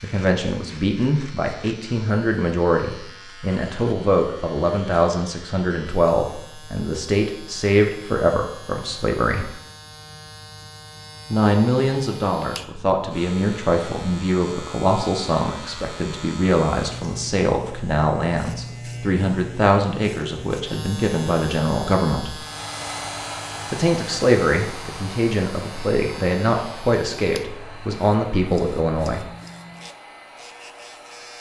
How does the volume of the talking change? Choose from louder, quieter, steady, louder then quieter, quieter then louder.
steady.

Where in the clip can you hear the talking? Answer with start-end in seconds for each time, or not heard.
0.0-9.5, 11.3-22.4, 23.7-29.2.